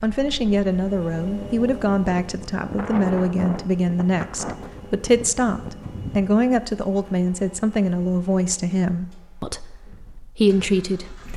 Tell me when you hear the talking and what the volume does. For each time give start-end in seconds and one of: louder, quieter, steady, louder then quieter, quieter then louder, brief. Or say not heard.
0.0-11.3 steady.